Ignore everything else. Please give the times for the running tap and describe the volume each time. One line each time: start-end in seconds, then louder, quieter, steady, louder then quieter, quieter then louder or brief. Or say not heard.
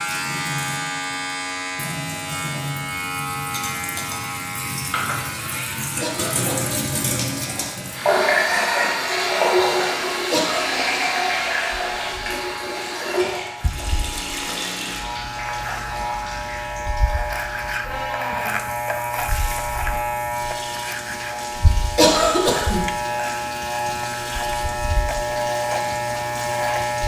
0.0-27.0 louder then quieter.